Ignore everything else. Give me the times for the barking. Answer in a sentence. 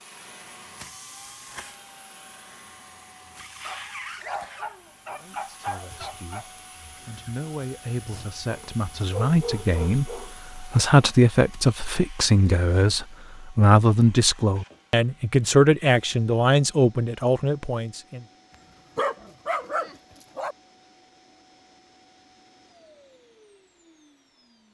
The barking can be heard from 3.6 to 6.5 s, from 8.5 to 10.3 s and from 18.9 to 20.6 s.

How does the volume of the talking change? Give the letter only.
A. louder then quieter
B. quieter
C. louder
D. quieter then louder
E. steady
C.